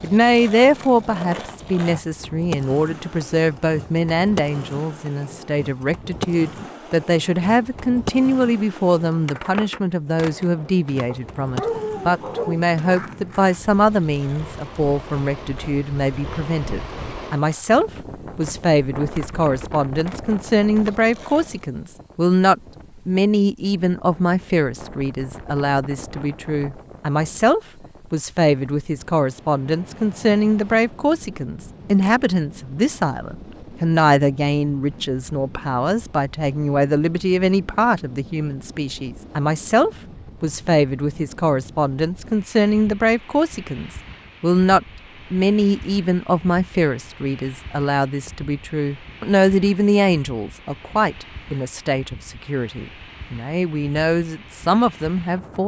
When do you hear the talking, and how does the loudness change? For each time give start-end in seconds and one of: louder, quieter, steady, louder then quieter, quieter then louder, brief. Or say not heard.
0.0-55.6 steady.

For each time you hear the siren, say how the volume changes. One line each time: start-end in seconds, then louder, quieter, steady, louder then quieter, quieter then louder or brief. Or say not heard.
not heard.